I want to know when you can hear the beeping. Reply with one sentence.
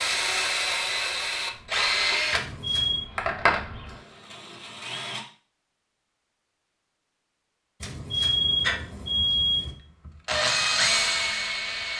The beeping can be heard from 2.3 to 3.1 s and from 7.8 to 9.8 s.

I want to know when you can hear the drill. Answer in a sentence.
You can hear the drill from 0.0 to 5.2 s and from 8.7 to 11.9 s.